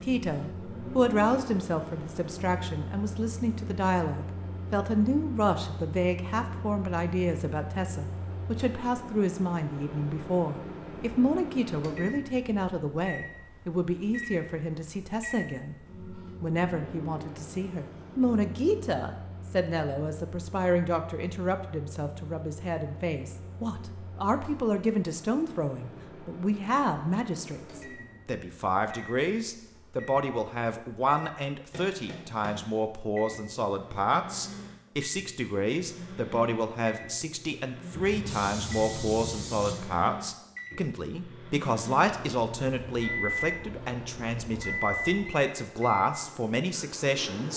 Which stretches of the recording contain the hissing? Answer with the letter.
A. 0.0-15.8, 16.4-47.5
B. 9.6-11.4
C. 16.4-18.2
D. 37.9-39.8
D.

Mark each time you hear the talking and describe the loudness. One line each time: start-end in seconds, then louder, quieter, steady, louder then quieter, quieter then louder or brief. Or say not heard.
0.0-15.8 steady
16.4-47.5 steady.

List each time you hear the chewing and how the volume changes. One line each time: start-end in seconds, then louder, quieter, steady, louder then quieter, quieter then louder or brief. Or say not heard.
not heard.